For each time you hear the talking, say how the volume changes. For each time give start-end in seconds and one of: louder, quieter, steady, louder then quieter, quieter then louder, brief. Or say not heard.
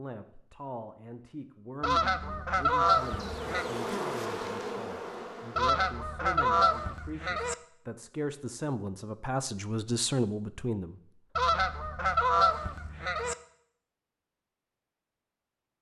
0.0-11.7 louder.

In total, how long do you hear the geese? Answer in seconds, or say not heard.
6 s.